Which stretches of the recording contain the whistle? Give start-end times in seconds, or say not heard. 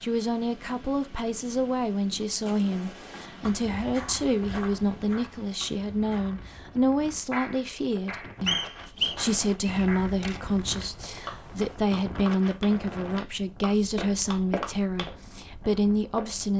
8.4-9.8.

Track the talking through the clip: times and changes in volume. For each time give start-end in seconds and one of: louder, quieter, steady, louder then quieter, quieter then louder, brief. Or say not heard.
0.0-16.5 steady.